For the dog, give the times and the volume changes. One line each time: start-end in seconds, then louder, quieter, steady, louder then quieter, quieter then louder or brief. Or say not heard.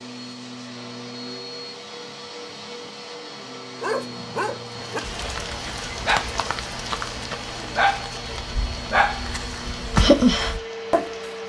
3.8-11.1 louder.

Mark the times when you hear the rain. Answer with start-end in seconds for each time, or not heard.
4.7-11.4.